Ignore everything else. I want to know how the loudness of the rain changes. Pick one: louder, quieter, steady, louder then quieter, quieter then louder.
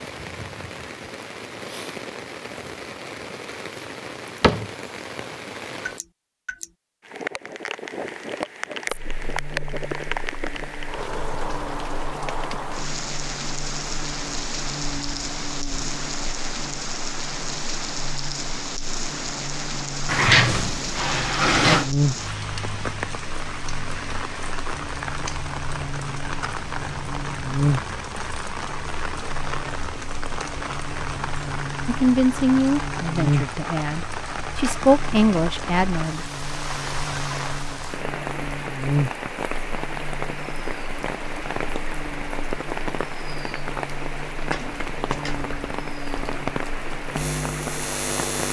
steady.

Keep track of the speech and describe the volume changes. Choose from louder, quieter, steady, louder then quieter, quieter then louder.
quieter then louder.